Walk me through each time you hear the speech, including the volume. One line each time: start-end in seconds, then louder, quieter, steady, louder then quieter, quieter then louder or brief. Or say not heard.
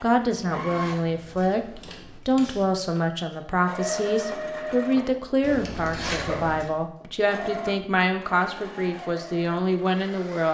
0.0-10.4 steady.